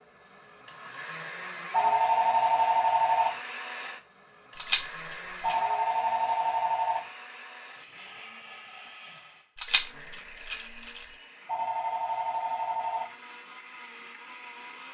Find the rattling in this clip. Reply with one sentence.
You can hear the rattling from 4.5 to 5.6 s and from 9.6 to 11.1 s.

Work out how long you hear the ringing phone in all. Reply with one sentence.
The ringing phone can be heard for 5 seconds in total.